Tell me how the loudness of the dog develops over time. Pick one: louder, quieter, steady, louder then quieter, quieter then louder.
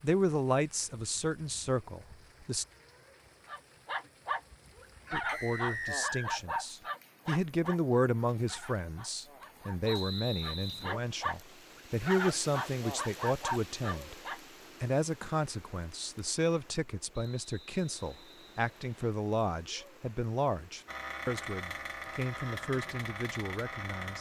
quieter then louder.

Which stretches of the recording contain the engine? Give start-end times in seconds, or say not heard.
20.9-24.1.